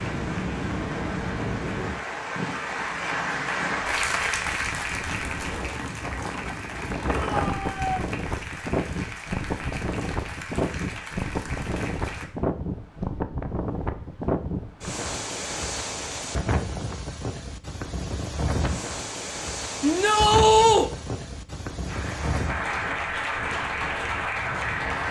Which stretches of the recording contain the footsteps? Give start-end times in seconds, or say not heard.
not heard.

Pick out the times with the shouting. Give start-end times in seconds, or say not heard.
7.1-8.1, 19.8-20.9.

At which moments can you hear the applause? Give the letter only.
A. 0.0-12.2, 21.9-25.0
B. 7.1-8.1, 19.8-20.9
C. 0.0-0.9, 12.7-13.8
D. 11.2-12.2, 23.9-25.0
A.